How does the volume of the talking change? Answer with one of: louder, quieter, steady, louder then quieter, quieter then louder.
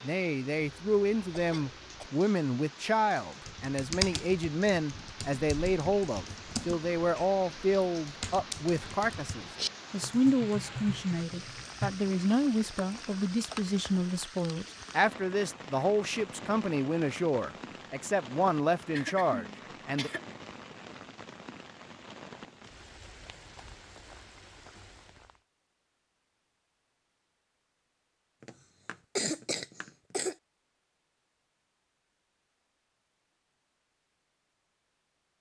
steady.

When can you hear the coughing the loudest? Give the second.
29 s.